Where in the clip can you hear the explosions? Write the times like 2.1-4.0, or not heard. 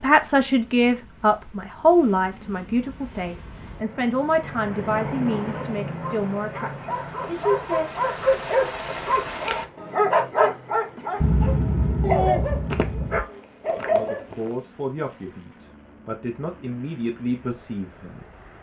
11.2-13.2.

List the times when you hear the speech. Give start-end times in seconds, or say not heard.
0.0-7.8, 13.9-18.2.